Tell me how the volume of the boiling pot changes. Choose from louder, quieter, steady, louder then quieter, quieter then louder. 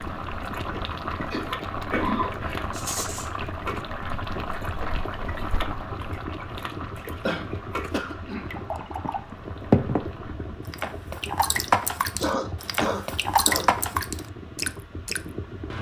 quieter.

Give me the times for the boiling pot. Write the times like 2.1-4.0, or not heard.
0.0-10.6.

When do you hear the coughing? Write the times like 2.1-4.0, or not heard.
1.2-2.6, 7.2-8.7, 12.2-13.7.